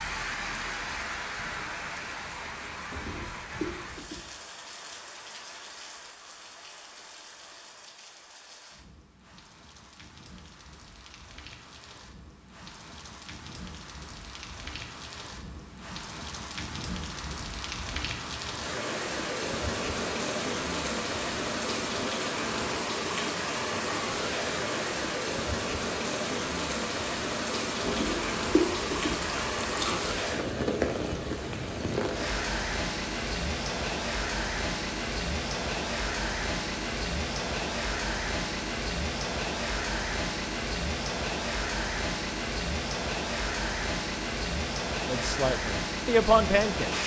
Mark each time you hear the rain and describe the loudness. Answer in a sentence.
You can hear the rain from 0.0 to 47.0 s, getting louder.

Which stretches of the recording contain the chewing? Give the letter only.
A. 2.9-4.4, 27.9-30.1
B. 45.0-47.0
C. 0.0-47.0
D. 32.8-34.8
A.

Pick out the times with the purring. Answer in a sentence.
The purring can't be heard in this clip.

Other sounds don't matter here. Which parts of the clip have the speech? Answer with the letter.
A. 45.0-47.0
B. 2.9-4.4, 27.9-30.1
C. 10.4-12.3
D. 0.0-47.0
A.